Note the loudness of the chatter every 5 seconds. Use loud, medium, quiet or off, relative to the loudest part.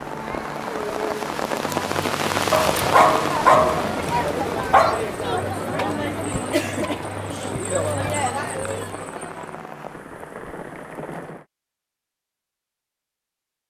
loud, loud, off.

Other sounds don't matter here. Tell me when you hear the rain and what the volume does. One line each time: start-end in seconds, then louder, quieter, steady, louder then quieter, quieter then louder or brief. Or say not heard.
0.0-11.4 quieter.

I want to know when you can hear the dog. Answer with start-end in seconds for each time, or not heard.
2.5-5.0.